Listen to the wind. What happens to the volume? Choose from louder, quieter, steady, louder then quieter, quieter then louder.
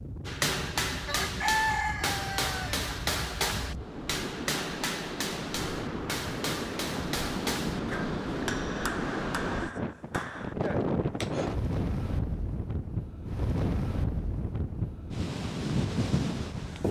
louder.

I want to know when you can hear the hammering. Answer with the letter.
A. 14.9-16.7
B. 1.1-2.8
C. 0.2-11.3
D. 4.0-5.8
C.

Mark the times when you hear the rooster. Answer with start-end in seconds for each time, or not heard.
1.1-2.8.